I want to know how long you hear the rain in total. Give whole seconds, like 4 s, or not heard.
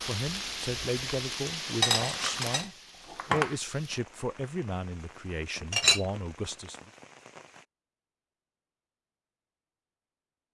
8 s.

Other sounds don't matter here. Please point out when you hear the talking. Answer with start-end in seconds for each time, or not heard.
0.0-6.9.